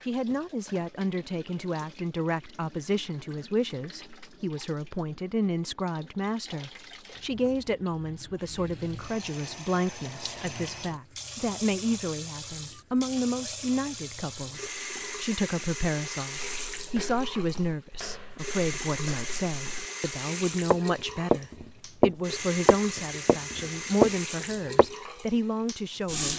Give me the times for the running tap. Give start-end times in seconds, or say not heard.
0.0-26.3.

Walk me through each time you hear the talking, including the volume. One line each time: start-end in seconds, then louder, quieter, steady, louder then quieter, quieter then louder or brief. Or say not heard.
0.0-26.3 steady.